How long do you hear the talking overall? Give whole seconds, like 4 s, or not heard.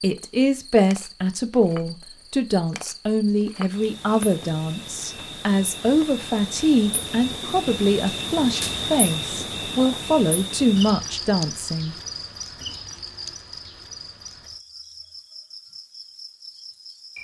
12 s.